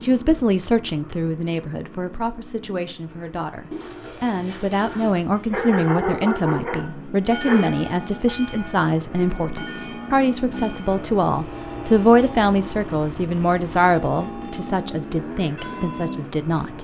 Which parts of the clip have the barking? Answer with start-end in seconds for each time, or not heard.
5.3-7.8.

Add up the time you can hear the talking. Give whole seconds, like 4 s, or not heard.
17 s.